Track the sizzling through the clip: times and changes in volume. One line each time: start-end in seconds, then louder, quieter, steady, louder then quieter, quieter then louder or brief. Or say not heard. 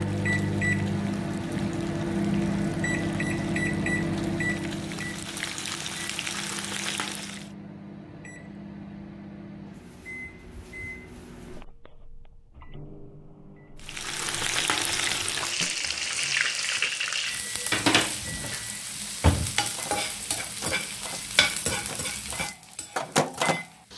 0.0-7.5 louder
13.8-23.9 quieter.